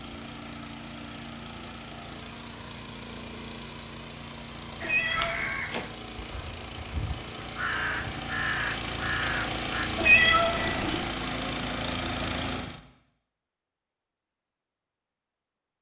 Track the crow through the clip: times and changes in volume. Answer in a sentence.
The crow can be heard from 4.8 to 9.9 s, getting quieter then louder.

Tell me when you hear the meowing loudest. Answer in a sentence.
The volume of the meowing peaks at 10 seconds.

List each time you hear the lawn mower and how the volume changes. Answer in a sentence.
You can hear the lawn mower from 0.0 to 12.8 s, getting louder.